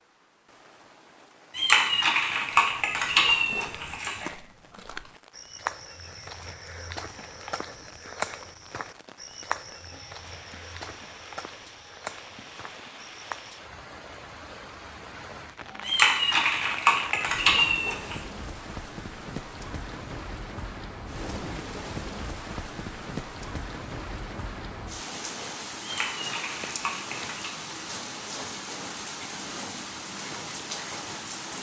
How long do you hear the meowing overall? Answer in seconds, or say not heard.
7 s.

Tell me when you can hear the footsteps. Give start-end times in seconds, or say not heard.
2.7-13.6.